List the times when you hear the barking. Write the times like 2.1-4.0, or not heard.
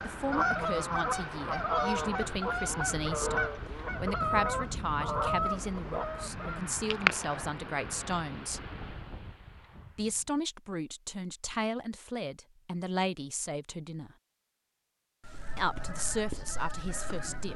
not heard.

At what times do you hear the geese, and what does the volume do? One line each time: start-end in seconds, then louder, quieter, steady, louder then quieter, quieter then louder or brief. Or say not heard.
0.0-7.5 steady
15.2-17.5 brief.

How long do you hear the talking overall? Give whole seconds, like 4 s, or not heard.
15 s.